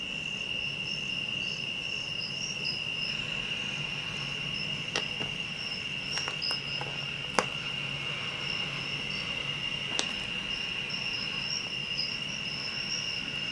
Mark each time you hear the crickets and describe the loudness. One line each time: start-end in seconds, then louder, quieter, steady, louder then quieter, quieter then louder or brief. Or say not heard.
0.0-13.4 steady.